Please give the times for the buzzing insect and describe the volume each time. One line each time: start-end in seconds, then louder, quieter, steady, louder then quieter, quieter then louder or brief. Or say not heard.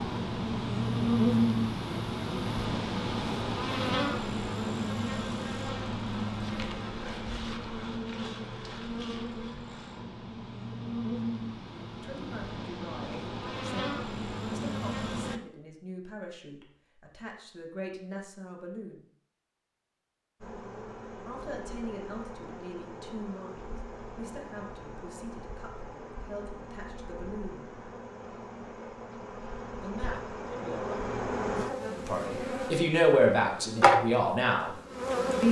0.0-15.4 quieter
20.4-35.4 louder.